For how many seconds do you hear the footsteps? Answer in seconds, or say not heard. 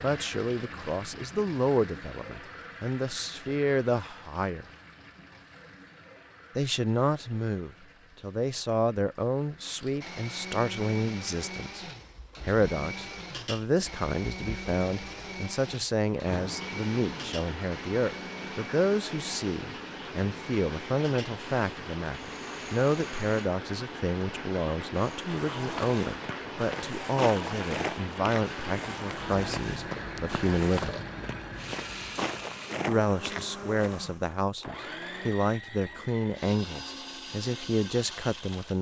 8 s.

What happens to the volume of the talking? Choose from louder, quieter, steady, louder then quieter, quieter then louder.
steady.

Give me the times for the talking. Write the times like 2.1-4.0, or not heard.
0.0-4.7, 6.5-30.9, 32.9-38.7.